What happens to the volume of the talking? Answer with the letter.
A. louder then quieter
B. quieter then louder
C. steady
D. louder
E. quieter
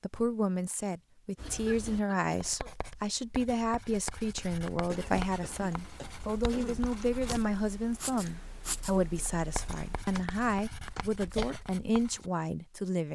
C.